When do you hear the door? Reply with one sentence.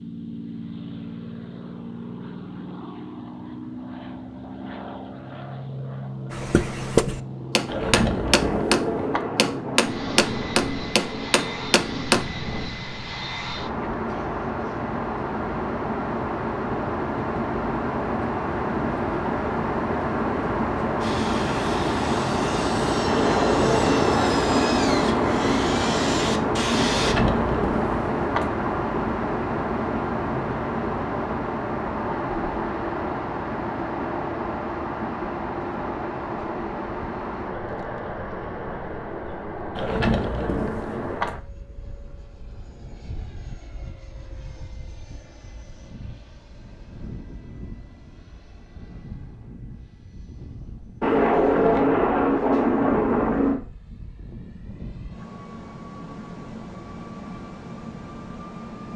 You can hear the door from 7.7 to 9.2 s, from 26.9 to 28.5 s and from 39.8 to 41.4 s.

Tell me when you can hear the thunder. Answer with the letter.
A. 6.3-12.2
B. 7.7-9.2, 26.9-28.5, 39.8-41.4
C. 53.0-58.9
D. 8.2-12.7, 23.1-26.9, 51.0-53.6
D.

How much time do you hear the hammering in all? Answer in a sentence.
You can hear the hammering for 6 seconds altogether.